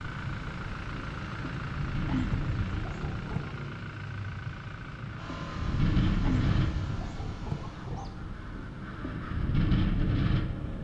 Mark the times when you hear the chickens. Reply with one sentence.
You can hear the chickens from 2.0 to 3.5 s and from 6.2 to 8.1 s.